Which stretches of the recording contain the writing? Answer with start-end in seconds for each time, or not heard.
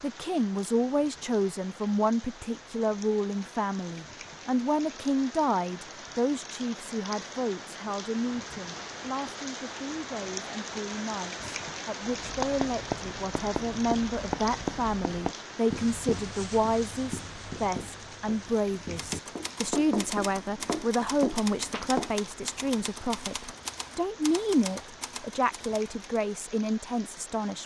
12.0-22.1.